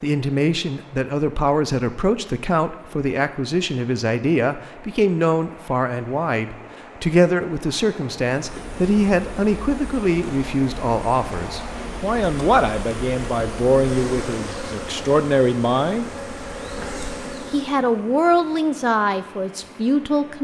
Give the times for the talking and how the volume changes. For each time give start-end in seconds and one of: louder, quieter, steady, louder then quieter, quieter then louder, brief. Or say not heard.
0.0-16.1 steady
17.5-20.3 brief.